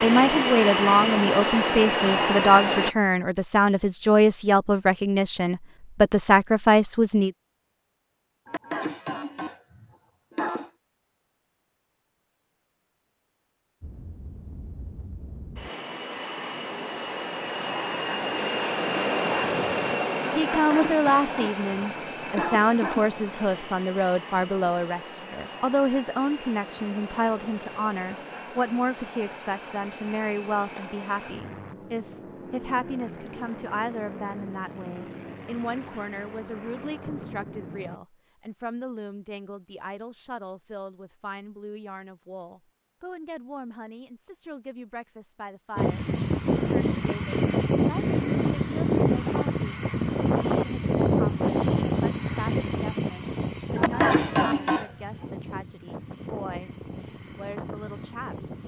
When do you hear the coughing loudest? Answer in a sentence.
The loudest moment of the coughing is at 54 seconds.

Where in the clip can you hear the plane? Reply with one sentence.
The plane can be heard from 0.0 to 3.0 s, from 13.8 to 38.0 s and from 45.8 to 58.6 s.